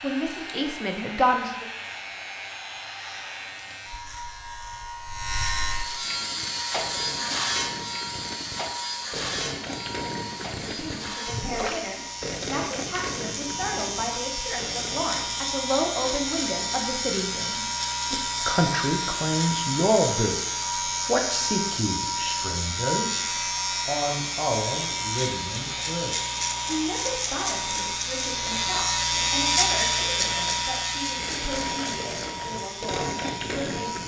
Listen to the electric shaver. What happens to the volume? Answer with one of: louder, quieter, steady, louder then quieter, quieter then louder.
louder.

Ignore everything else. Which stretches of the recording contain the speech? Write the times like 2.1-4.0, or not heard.
0.0-1.6, 10.7-20.4, 21.1-34.0.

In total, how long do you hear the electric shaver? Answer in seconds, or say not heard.
34 s.